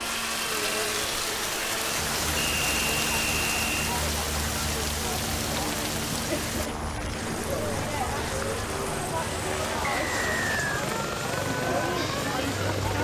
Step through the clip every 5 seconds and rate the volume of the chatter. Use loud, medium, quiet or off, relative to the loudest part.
medium, loud, loud.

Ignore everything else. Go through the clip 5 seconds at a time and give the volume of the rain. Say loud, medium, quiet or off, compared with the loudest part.
loud, medium, medium.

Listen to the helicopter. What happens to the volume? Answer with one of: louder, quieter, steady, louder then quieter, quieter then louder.
steady.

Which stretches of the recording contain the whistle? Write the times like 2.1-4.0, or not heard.
2.4-4.0, 9.9-10.8.